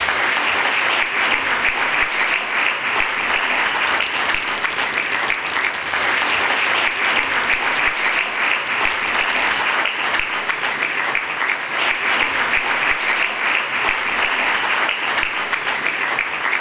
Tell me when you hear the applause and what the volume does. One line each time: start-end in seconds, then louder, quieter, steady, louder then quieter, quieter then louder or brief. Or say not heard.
0.0-16.5 steady.